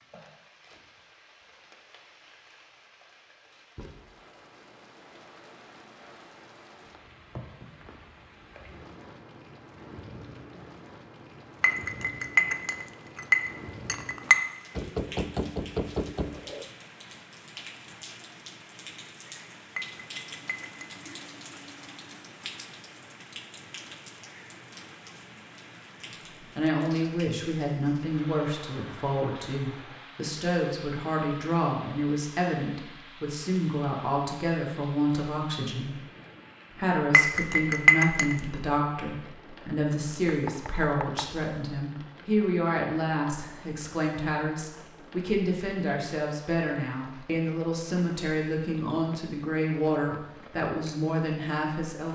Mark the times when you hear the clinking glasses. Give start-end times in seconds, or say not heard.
11.6-14.3, 19.8-20.9, 37.1-38.4.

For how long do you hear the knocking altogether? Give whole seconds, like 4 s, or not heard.
3 s.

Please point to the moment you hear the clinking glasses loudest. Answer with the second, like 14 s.
38 s.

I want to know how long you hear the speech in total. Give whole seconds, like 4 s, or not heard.
25 s.